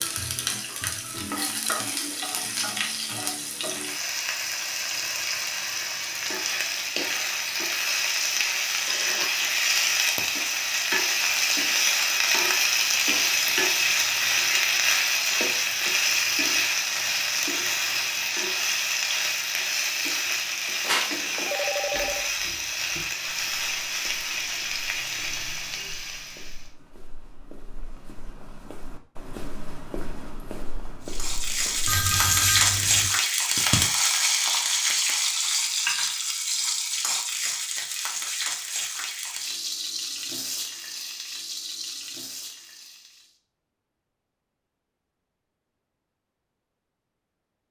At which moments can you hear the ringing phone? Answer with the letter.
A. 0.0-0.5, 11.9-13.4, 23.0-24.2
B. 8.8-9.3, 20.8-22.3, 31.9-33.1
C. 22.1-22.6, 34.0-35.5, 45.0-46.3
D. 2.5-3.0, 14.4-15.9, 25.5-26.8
B.